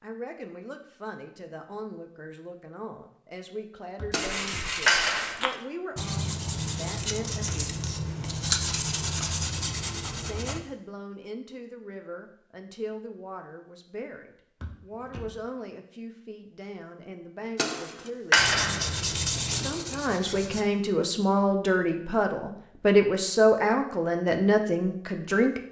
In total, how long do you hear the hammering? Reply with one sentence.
You can hear the hammering for 4 seconds altogether.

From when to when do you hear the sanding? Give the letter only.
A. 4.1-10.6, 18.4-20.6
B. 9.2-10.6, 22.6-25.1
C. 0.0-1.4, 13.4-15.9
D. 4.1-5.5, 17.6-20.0
A.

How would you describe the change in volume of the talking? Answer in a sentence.
The loudness of the talking goes up.